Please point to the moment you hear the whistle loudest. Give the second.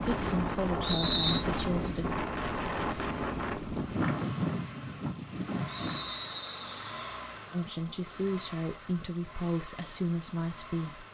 1 s.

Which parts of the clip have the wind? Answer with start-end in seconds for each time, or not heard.
0.0-6.2.